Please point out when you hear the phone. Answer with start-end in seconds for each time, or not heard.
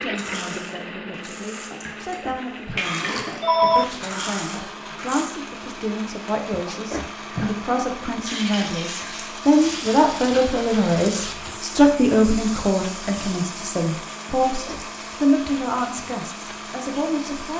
1.9-3.9, 6.5-7.5, 14.4-15.2.